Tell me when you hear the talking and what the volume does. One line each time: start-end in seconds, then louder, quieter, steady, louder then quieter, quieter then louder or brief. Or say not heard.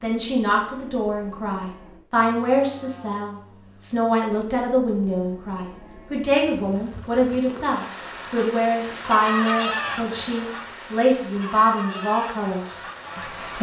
0.0-13.5 steady.